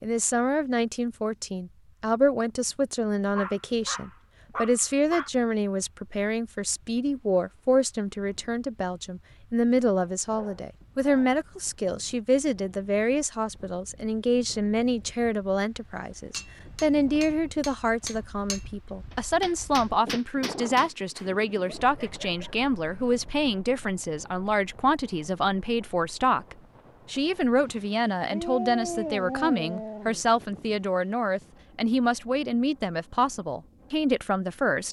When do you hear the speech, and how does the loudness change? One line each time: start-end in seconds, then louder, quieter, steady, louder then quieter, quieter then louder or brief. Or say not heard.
0.0-34.8 steady.